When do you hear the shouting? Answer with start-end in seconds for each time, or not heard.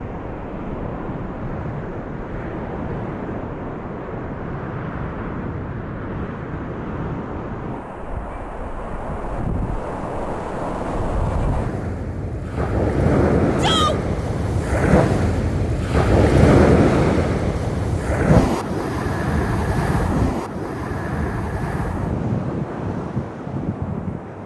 13.6-14.0.